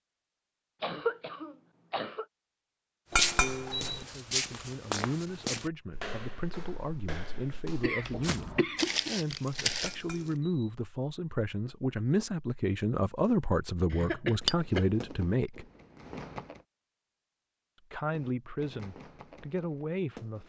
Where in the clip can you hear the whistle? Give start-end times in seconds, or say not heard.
not heard.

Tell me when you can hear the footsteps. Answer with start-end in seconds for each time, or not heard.
3.1-10.3.